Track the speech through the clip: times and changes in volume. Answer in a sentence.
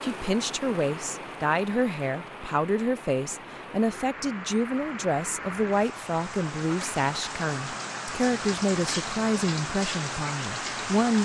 The speech can be heard from 0.0 to 11.2 s, at a steady volume.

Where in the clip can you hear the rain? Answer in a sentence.
You can hear the rain from 0.0 to 11.2 s.